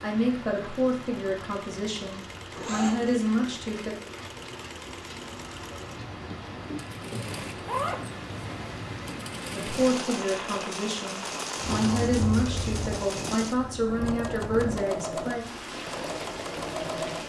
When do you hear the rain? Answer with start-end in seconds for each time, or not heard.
0.0-17.2.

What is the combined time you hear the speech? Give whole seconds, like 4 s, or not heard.
10 s.